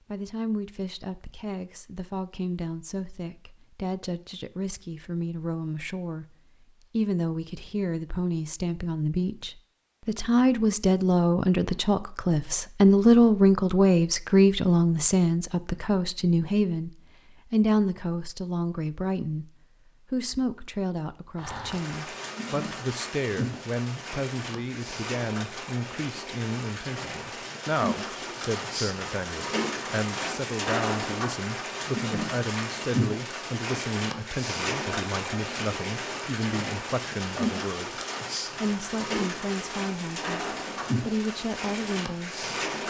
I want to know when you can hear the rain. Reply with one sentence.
You can hear the rain from 21.4 to 42.8 s.